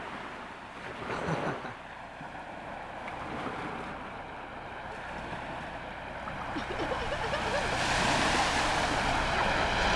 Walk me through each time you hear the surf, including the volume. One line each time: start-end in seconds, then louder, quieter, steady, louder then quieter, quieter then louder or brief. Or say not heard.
0.0-9.9 louder.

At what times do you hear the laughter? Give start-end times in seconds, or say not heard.
1.1-1.8, 6.5-7.8.